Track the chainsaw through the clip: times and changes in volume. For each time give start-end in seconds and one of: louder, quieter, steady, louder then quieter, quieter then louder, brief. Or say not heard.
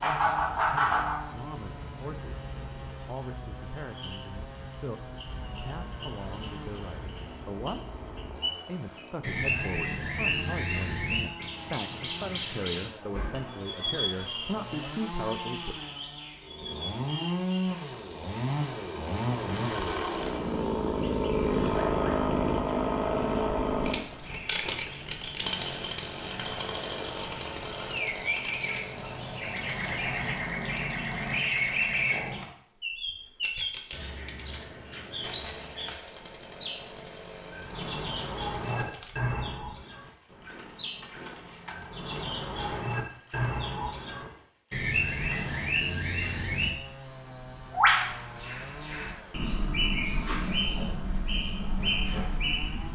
0.0-52.9 louder then quieter.